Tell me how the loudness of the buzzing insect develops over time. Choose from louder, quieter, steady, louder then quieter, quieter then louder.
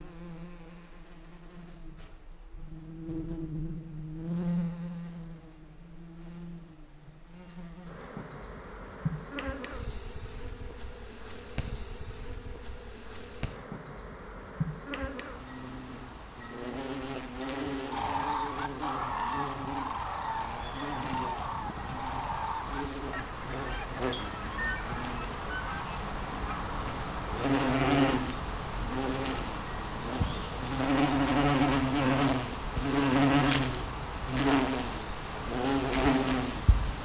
louder.